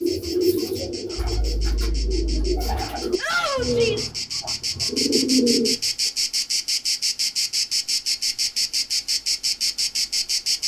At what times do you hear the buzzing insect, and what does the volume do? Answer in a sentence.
The buzzing insect can be heard from 0.0 to 10.6 s, getting louder.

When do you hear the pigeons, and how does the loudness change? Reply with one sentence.
The pigeons can be heard from 0.0 to 5.9 s, getting quieter then louder.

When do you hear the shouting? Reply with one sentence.
You can hear the shouting from 3.1 to 4.1 s.